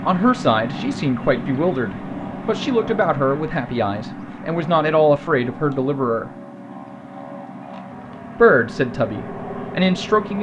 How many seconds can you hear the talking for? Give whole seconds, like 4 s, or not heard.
8 s.